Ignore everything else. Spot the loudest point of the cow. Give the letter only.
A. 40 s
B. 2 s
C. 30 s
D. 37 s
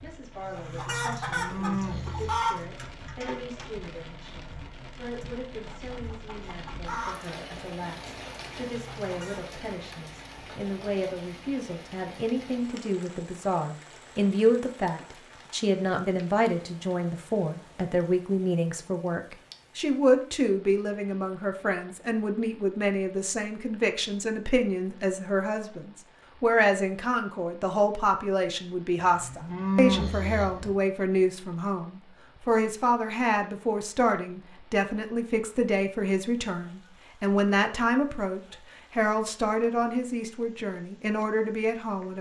C.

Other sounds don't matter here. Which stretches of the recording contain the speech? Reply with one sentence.
The speech can be heard from 0.0 to 42.1 s.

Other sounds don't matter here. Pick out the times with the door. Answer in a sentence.
You can't hear the door here.